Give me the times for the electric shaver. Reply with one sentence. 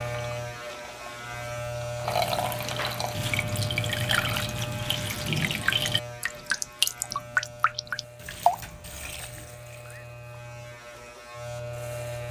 You can hear the electric shaver from 0.0 to 12.2 s.